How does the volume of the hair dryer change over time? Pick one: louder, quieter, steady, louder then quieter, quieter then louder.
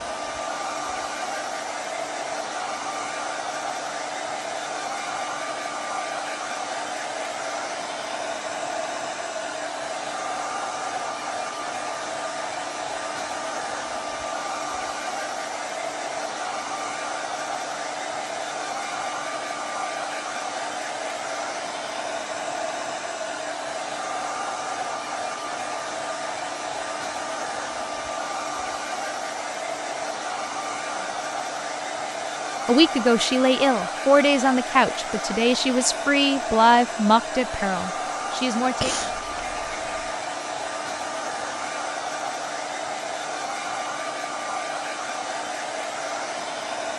steady.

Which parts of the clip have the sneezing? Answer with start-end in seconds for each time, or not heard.
38.8-40.1.